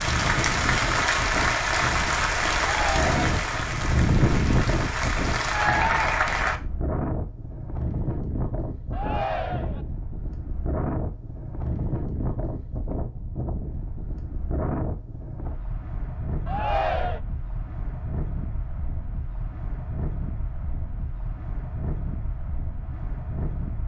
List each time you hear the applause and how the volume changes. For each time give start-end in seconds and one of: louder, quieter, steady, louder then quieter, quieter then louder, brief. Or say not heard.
0.0-6.6 quieter then louder.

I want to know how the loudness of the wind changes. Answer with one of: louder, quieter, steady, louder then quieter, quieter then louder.
quieter.